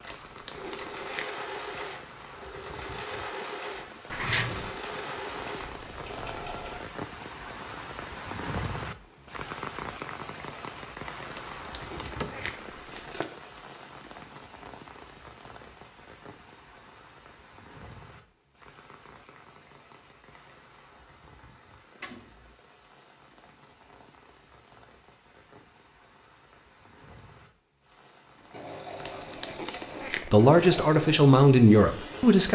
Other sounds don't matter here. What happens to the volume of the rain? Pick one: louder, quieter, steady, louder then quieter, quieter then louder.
louder then quieter.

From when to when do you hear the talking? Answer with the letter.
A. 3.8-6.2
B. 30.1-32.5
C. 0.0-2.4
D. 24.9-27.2
B.